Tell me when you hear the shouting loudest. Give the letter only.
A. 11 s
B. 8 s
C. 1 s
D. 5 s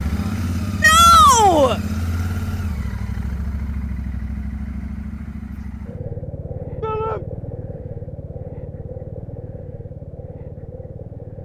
C.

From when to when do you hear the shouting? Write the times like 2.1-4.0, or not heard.
0.8-1.8, 6.8-7.2.